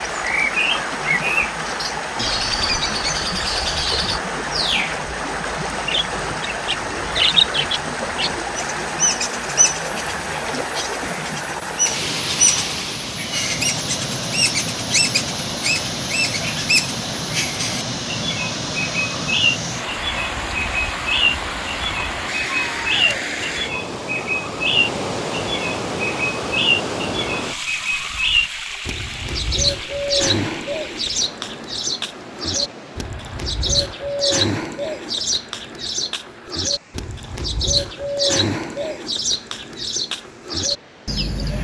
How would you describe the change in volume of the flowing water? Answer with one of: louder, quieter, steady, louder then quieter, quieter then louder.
quieter.